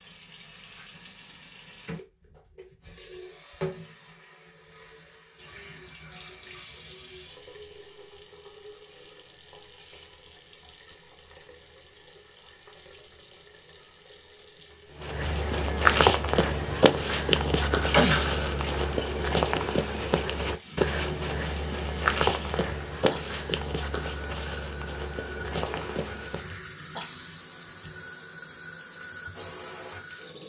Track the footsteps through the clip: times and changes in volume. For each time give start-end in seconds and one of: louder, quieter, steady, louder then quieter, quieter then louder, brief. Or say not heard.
15.0-26.6 quieter.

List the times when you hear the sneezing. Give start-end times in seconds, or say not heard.
17.9-18.4.